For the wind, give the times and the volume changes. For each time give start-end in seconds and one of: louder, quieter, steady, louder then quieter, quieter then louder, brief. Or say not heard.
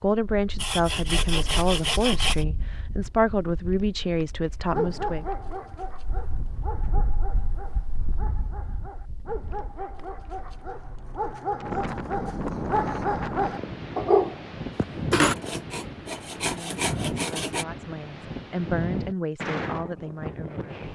0.2-20.9 louder.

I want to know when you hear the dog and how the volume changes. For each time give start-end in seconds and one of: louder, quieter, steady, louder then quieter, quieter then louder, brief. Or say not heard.
4.7-15.3 quieter then louder.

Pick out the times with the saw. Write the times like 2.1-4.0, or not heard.
0.6-2.5, 15.3-17.6.